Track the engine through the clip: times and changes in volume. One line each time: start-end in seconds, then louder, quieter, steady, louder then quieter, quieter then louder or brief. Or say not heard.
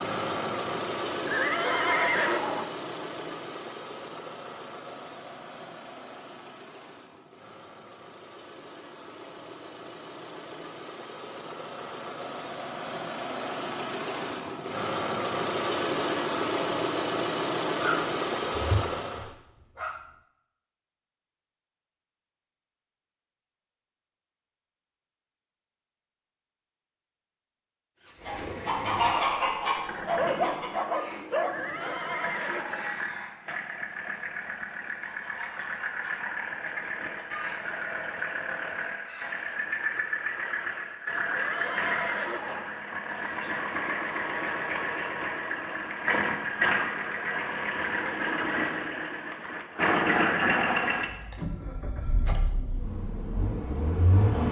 0.0-19.3 quieter then louder
28.0-54.4 louder.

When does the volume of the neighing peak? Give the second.
2 s.